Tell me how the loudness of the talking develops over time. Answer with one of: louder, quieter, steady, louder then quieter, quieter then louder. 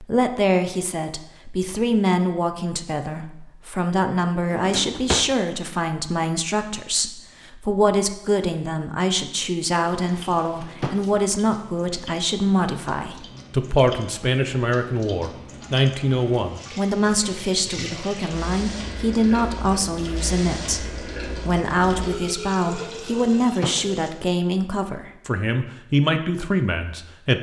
steady.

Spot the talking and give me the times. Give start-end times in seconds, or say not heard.
0.0-27.3.